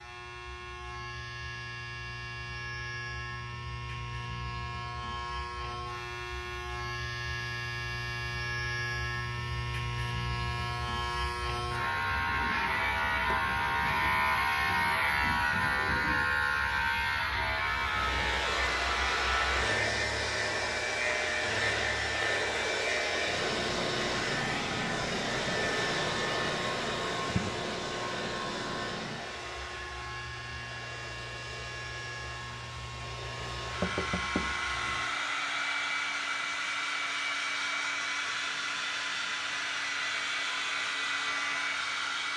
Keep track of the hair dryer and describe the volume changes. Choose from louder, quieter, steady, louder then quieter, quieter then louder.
quieter then louder.